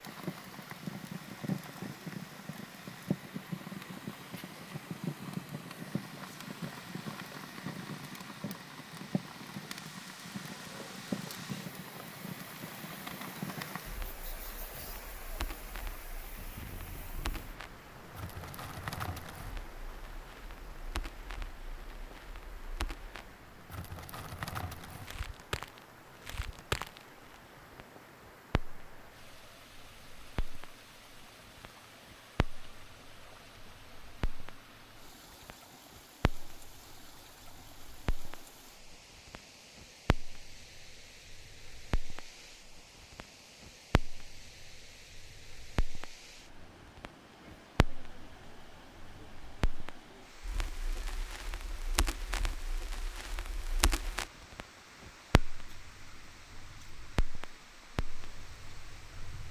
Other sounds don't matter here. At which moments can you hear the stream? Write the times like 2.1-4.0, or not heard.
0.0-59.4.